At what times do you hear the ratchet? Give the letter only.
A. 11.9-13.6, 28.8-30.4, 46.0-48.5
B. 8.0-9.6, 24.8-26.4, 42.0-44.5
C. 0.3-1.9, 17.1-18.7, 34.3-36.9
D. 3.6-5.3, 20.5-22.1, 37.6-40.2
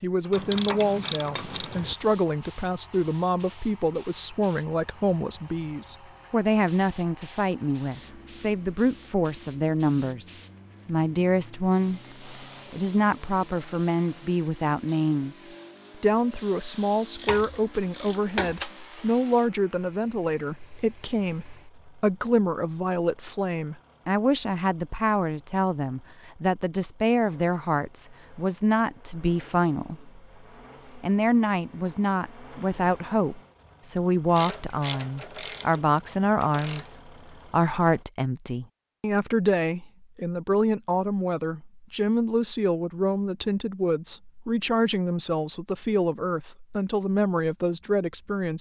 C.